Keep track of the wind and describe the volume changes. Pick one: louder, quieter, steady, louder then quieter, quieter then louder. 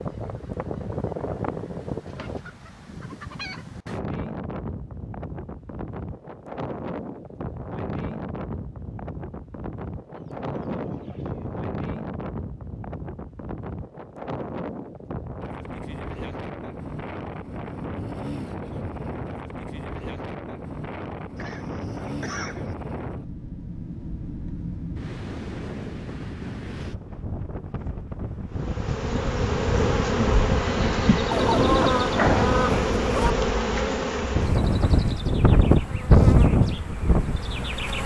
louder.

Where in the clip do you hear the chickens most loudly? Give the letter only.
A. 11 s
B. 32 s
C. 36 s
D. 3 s
B.